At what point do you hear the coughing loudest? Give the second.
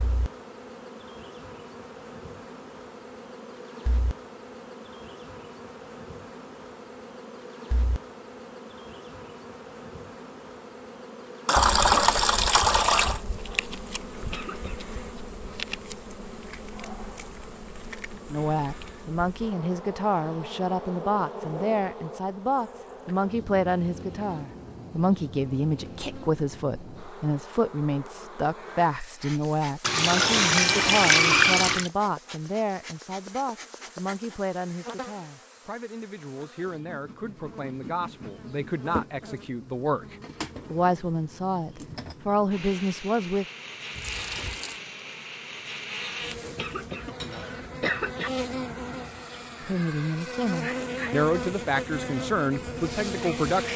48 s.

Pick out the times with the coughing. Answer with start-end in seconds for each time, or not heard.
14.2-14.8, 46.5-48.3.